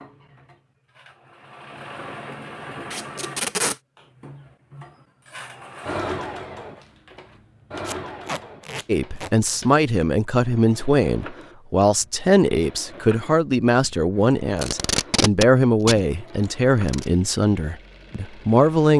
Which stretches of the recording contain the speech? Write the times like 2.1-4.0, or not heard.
8.8-18.9.